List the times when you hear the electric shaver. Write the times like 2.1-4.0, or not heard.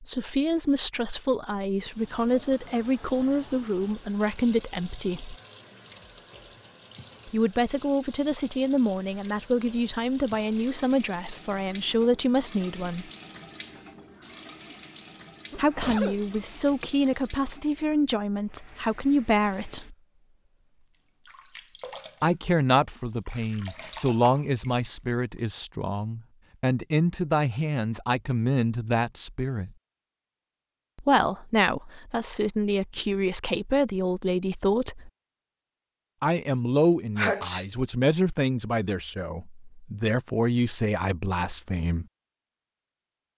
not heard.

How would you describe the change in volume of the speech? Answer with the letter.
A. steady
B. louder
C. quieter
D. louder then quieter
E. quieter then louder
A.